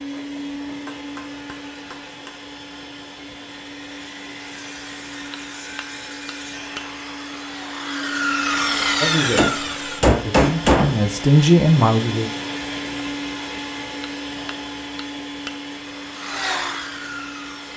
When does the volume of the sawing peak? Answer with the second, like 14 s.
9 s.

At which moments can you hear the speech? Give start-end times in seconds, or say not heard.
9.0-12.3.